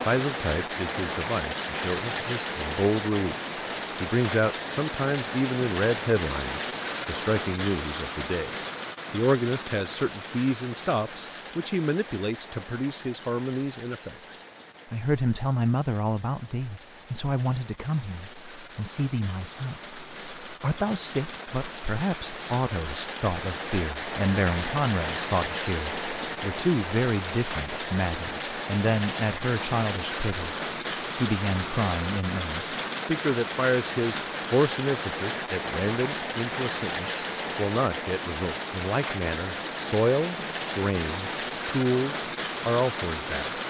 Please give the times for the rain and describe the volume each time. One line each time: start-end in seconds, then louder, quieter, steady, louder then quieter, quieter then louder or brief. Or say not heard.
0.0-43.6 quieter then louder.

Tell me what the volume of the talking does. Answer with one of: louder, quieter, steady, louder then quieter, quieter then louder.
steady.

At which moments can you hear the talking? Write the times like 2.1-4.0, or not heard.
0.0-3.4, 4.0-30.6, 31.1-43.5.